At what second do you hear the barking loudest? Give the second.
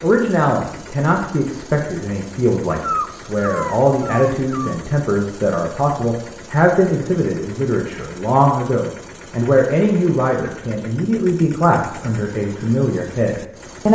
3 s.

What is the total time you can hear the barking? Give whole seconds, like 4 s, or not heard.
2 s.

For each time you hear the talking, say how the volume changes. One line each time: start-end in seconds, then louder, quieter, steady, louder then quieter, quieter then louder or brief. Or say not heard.
0.0-13.9 steady.